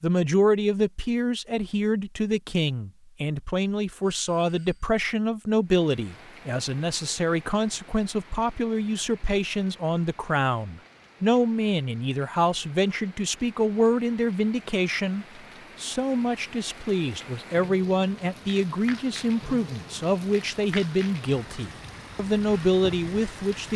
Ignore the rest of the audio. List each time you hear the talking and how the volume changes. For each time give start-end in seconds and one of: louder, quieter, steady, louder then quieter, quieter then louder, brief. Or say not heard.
0.0-23.7 steady.